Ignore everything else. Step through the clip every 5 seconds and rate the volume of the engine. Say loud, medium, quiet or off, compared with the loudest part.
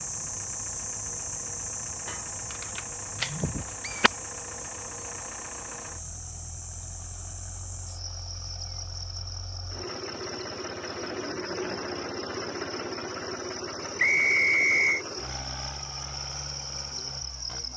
medium, medium, loud, medium.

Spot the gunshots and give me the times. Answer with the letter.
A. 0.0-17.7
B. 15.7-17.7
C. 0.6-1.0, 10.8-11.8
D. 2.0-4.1
D.